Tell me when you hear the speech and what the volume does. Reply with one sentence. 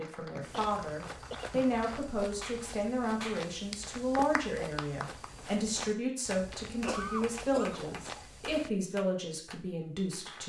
The speech can be heard from 0.0 to 10.4 s, at a steady volume.